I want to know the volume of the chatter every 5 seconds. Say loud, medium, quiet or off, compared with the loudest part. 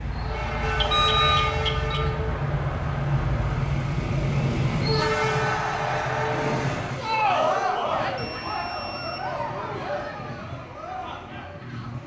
medium, loud, medium.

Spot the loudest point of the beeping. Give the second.
1 s.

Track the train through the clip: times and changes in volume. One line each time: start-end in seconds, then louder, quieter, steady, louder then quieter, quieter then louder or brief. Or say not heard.
0.0-12.0 quieter.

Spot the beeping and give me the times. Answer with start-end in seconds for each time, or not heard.
0.8-2.0, 8.2-9.3.